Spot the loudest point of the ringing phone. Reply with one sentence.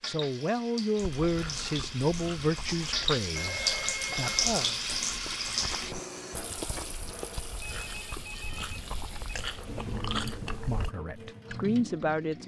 The volume of the ringing phone peaks at 4 seconds.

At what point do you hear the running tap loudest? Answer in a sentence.
The loudest moment of the running tap is at 4 seconds.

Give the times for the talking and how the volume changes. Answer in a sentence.
The talking can be heard from 0.1 to 4.8 s, getting quieter; and briefly from 9.9 to 12.4 s.